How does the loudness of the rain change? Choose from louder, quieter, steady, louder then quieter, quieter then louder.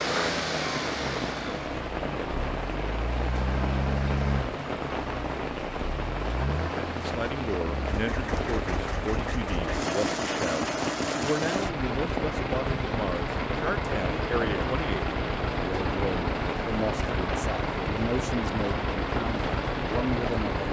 steady.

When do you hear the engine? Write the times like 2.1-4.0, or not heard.
0.0-20.6.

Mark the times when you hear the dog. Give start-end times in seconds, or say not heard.
not heard.